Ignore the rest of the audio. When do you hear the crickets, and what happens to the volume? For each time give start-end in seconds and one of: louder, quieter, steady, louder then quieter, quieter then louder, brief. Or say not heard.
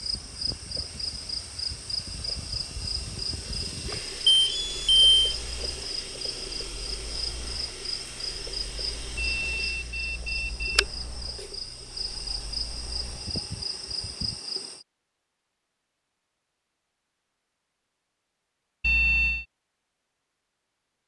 0.0-14.8 steady.